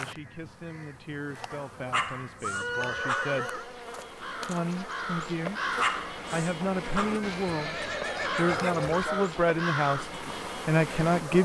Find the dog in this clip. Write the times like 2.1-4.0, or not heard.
1.9-3.4, 5.8-7.2.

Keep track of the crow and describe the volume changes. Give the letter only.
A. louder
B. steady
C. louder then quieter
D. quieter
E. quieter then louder
A.